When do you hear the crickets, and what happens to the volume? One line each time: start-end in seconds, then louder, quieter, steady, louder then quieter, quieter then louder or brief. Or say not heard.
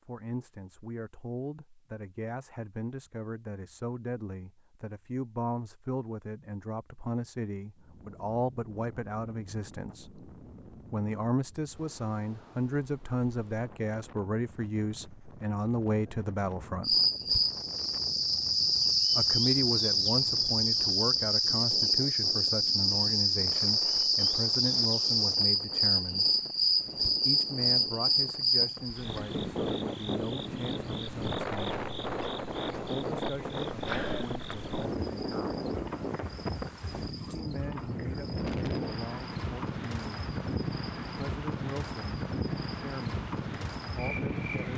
16.8-44.7 quieter.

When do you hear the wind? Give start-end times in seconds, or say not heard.
7.8-44.7.